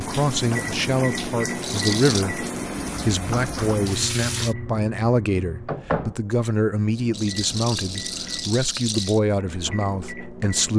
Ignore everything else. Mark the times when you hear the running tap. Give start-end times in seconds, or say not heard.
0.0-4.5.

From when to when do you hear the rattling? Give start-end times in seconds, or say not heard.
1.6-2.2, 7.1-9.2.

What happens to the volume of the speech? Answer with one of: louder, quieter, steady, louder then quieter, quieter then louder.
steady.